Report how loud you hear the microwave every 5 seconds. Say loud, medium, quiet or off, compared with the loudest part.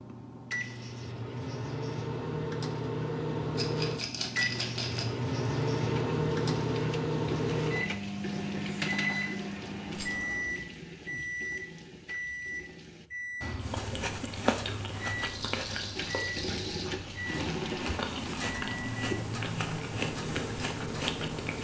loud, loud, medium, medium, medium.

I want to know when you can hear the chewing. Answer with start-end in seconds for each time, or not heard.
13.6-21.6.